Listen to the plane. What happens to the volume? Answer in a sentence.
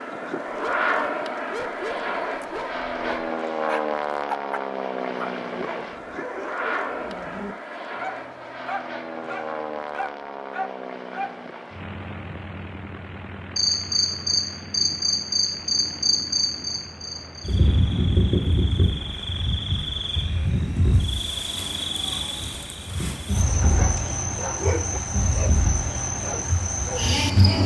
The loudness of the plane goes down.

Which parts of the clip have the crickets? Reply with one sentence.
You can hear the crickets from 13.6 to 27.6 s.